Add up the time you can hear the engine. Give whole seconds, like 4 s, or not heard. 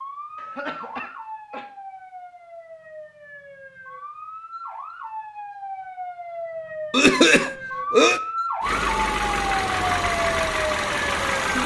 3 s.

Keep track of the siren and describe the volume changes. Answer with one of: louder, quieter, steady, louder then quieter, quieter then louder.
louder.